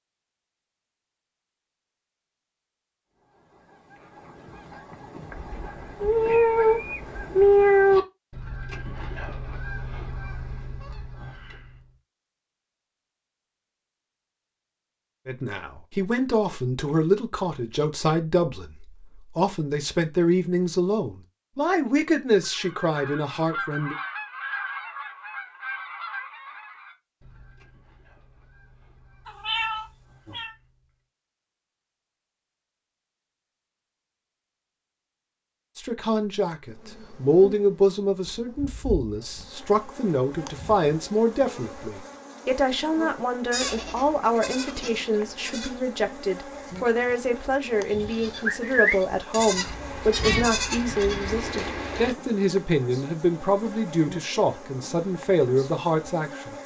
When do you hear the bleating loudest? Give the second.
49 s.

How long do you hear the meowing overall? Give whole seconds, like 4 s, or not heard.
5 s.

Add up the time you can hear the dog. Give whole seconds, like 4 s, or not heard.
not heard.